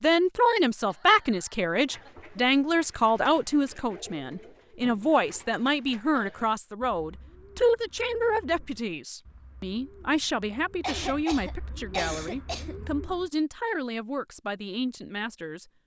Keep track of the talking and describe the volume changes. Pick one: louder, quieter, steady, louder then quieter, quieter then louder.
quieter.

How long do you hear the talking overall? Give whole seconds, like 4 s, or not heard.
16 s.